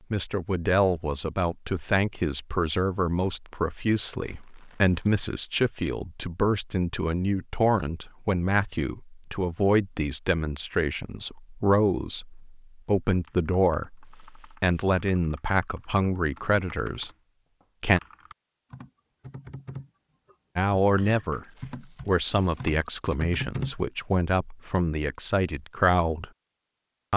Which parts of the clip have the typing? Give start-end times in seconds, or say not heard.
13.1-23.8.